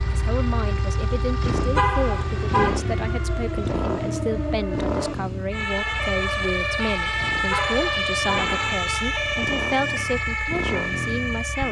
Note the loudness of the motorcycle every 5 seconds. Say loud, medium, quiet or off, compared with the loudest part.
loud, medium, loud.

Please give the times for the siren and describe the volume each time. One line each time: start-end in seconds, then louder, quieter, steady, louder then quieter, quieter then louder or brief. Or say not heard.
0.0-11.6 louder.